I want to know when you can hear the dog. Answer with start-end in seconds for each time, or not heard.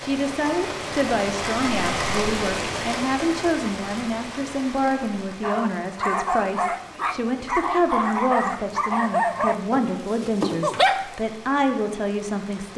5.4-11.2.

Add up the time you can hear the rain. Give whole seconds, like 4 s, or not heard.
13 s.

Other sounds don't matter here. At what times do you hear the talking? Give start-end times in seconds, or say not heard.
0.0-12.7.